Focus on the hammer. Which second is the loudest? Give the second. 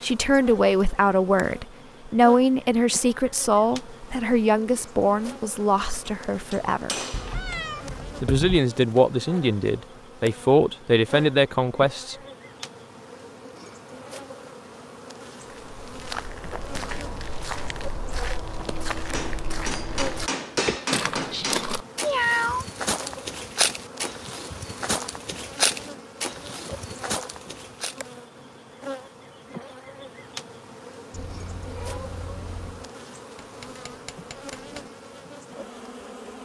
21 s.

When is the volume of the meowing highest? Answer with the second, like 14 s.
22 s.